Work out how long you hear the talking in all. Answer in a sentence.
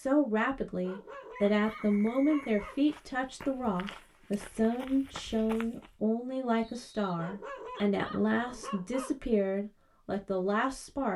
The talking can be heard for 11 seconds in total.